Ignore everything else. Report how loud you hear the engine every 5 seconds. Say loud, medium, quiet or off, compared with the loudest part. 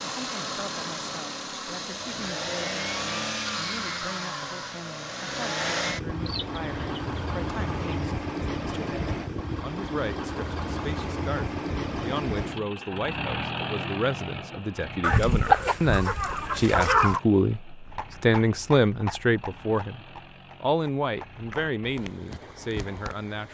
loud, loud, loud, quiet, quiet.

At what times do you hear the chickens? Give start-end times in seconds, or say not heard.
6.2-8.0, 15.0-17.2.